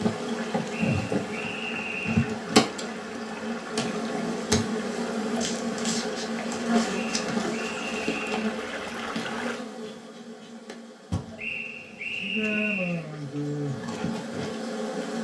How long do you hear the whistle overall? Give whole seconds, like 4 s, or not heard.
5 s.